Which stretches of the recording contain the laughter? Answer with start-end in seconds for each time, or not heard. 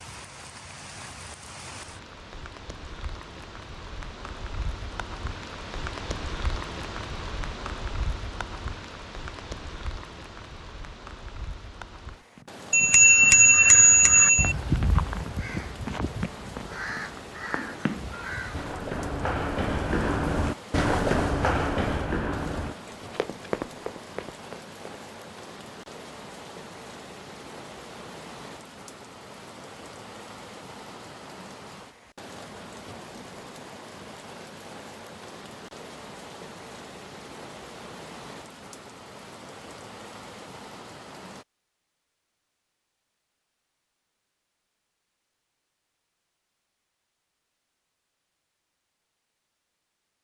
not heard.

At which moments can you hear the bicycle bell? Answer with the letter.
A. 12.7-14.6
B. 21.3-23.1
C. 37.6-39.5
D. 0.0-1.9
A.